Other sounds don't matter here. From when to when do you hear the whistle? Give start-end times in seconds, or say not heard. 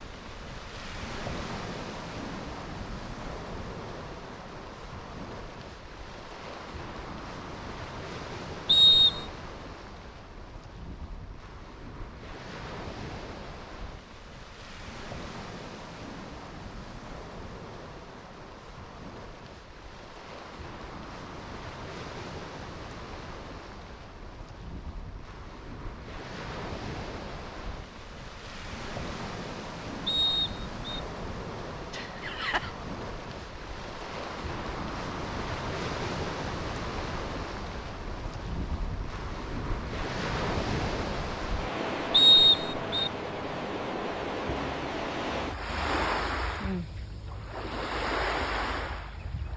8.7-9.2, 30.1-31.0, 42.1-43.1.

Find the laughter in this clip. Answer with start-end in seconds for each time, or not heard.
31.9-32.7.